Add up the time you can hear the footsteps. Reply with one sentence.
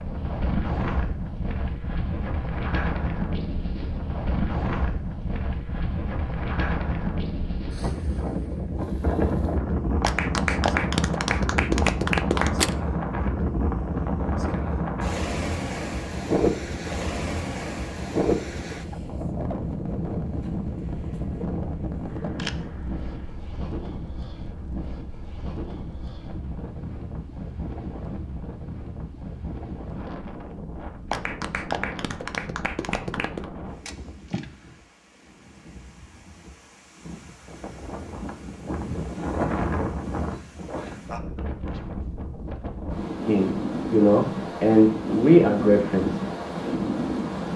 The footsteps can't be heard in this clip.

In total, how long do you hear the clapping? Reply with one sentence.
The clapping can be heard for 5 seconds in total.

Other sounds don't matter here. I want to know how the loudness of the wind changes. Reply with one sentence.
The volume of the wind goes down, then up.